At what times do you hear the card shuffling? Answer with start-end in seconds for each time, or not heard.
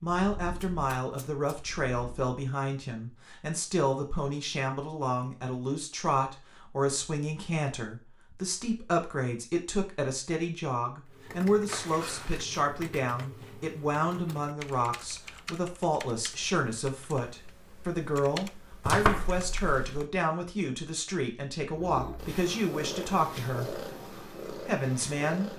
0.6-1.5, 11.7-12.4, 18.9-20.1.